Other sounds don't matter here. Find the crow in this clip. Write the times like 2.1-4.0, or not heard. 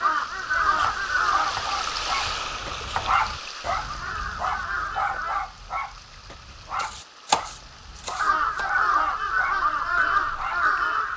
0.0-1.7, 3.8-5.5, 8.2-11.1.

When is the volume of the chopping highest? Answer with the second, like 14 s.
7 s.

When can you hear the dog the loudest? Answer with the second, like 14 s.
3 s.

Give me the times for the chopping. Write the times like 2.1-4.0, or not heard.
0.7-3.2, 6.8-8.7.